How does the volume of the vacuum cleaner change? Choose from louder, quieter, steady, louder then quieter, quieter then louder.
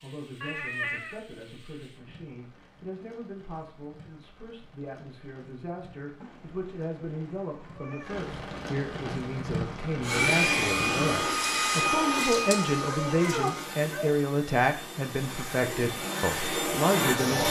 quieter then louder.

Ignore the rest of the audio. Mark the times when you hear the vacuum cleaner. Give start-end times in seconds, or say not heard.
10.0-17.4.